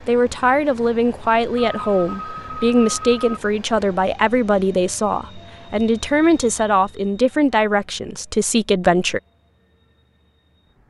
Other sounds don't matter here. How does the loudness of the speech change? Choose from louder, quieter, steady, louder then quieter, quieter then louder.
steady.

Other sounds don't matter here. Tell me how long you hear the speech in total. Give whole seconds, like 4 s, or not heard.
9 s.